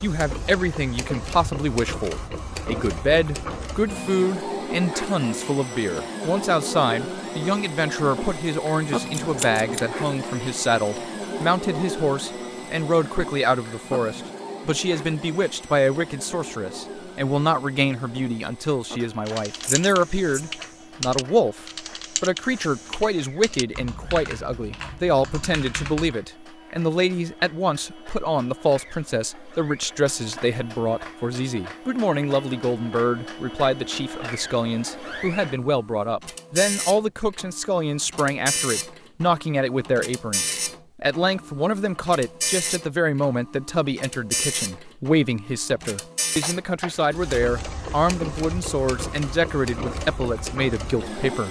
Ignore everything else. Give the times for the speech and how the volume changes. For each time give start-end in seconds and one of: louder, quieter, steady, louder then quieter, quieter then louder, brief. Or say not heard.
0.0-51.4 steady.